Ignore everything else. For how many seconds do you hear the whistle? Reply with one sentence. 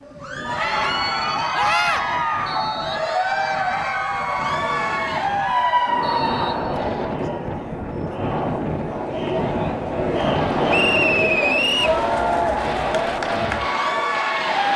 You can hear the whistle for 3 seconds altogether.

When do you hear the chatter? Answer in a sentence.
You can hear the chatter from 0.1 to 14.7 s.